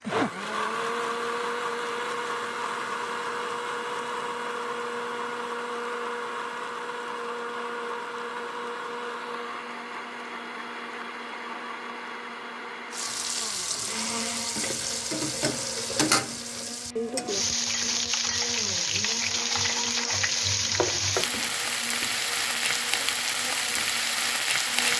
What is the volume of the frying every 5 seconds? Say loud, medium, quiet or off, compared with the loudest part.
off, off, medium, loud, loud.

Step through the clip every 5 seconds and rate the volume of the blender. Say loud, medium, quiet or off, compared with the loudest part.
loud, loud, medium, medium, quiet.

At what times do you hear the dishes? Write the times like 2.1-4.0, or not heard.
not heard.